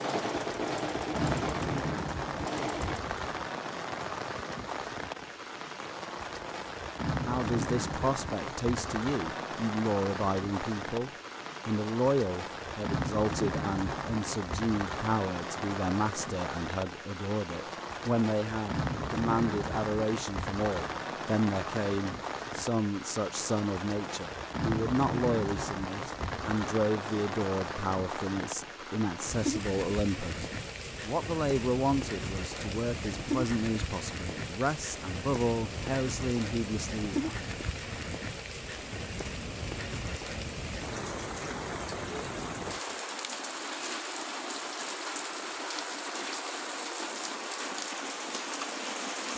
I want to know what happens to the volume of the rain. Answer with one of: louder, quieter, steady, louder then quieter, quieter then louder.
steady.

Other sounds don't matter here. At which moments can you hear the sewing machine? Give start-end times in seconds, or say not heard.
0.0-3.0.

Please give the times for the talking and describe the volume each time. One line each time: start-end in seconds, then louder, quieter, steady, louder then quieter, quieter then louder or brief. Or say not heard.
7.2-37.4 steady.